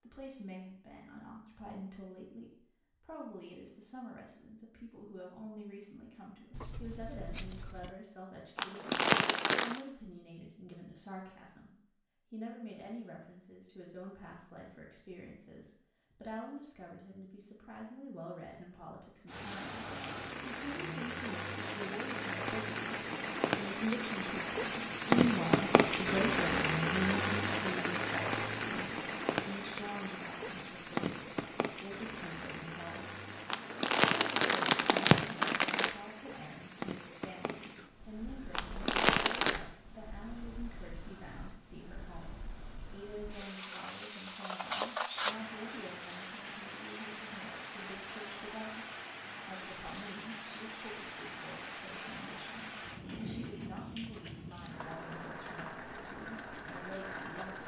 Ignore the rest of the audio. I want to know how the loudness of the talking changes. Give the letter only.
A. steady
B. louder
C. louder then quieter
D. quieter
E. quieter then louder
C.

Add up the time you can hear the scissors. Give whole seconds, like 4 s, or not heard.
3 s.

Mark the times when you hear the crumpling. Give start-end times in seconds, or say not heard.
8.6-9.8, 33.5-36.0, 38.5-39.6.